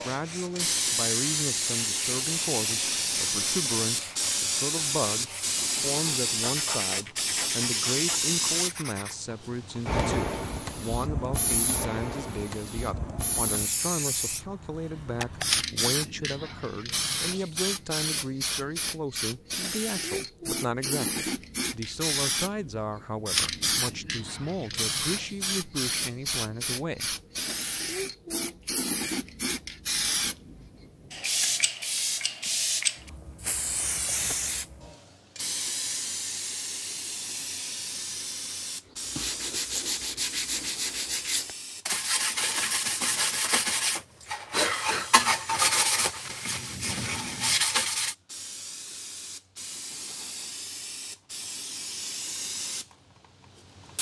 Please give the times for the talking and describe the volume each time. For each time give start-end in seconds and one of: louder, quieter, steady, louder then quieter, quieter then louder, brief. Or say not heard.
0.0-27.1 steady.